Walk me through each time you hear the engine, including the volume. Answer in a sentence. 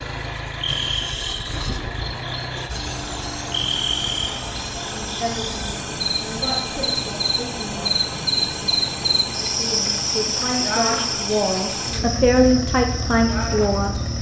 You can hear the engine from 0.0 to 14.1 s, at a steady volume.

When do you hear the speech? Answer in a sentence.
You can hear the speech from 5.0 to 8.0 s and from 9.6 to 14.0 s.